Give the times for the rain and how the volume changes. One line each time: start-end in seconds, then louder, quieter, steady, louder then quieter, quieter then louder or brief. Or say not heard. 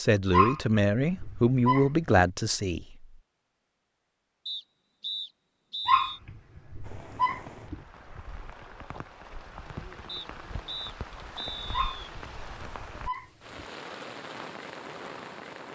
6.8-15.7 louder.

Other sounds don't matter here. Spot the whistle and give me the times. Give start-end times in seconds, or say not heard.
4.5-6.2, 10.1-12.1.